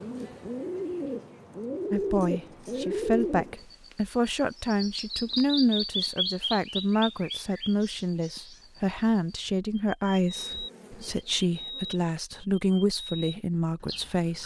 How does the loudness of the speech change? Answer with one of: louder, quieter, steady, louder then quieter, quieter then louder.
steady.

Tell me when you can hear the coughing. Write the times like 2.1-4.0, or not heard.
not heard.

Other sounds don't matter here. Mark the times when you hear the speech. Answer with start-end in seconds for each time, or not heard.
1.9-14.4.